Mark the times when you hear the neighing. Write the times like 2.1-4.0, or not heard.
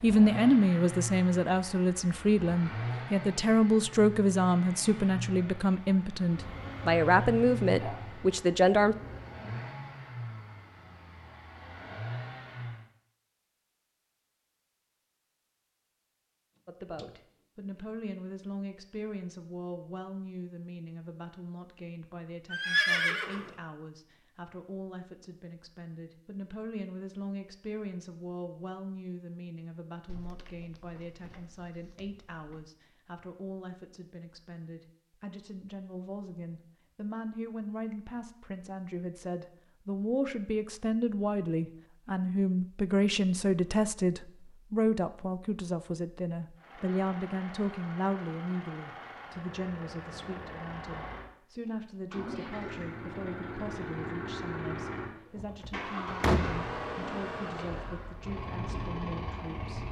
22.5-23.5.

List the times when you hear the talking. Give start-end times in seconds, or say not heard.
0.0-8.9, 16.6-59.8.